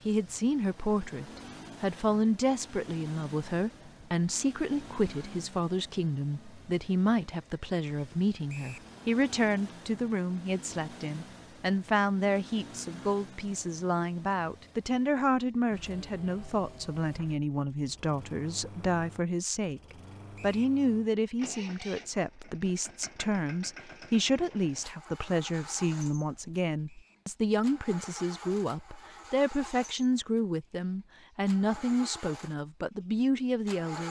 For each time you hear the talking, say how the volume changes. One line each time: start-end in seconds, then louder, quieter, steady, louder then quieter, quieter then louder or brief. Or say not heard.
0.1-34.0 steady.